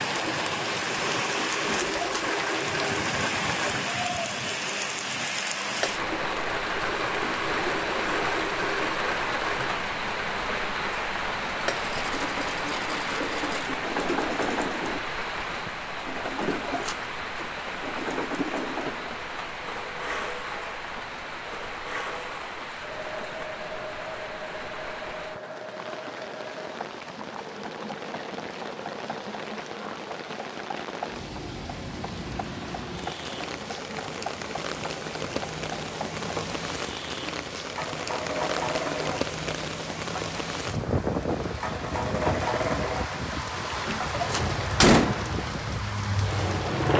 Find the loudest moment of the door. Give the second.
45 s.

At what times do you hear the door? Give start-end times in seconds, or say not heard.
1.6-2.3, 16.4-17.1, 43.9-45.1.